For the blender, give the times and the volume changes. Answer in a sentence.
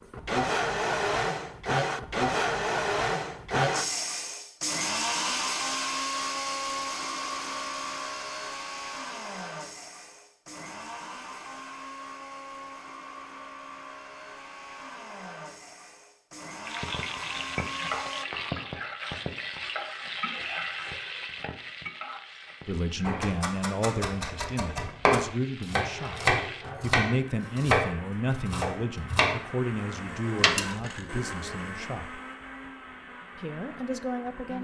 You can hear the blender from 0.0 to 18.2 s, getting quieter; and from 25.9 to 34.6 s, getting louder then quieter.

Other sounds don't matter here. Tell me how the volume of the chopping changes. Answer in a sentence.
The loudness of the chopping goes up, then down.